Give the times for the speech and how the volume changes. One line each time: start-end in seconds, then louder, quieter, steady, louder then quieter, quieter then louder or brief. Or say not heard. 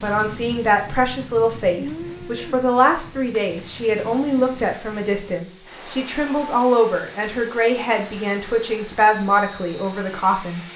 0.0-10.7 steady.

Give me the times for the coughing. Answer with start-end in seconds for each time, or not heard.
not heard.